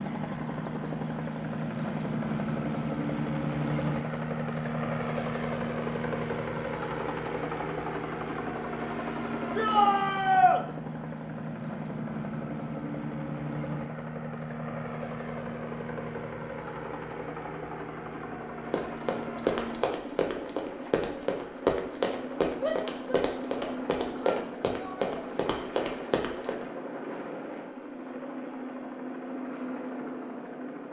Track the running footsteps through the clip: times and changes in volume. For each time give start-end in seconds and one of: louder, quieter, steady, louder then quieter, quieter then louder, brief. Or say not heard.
18.7-26.6 steady.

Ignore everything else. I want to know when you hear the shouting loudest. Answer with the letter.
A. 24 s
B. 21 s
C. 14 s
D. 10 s
D.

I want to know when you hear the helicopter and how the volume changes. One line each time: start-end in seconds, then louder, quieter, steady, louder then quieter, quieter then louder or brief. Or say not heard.
0.0-30.8 quieter.